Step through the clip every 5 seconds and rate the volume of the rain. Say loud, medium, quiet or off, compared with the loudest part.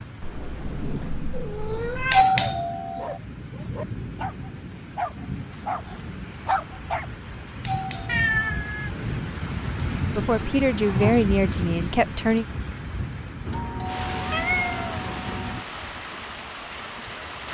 medium, loud, loud, medium.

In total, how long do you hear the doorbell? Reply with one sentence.
The doorbell can be heard for 4 seconds in total.